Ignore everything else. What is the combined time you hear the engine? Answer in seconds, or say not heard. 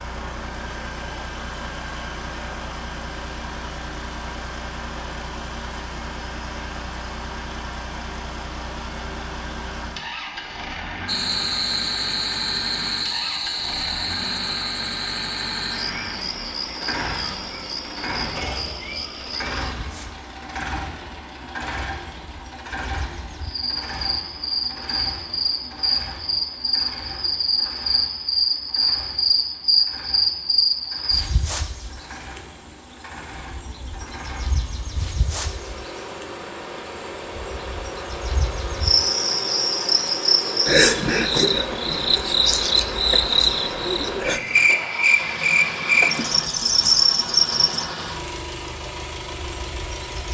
50 s.